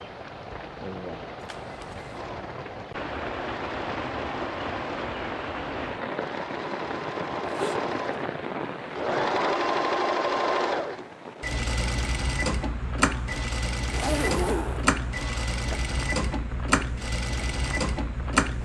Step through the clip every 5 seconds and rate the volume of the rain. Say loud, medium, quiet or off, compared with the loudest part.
loud, loud, medium, medium.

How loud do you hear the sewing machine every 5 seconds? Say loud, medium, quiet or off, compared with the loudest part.
medium, loud, loud, loud.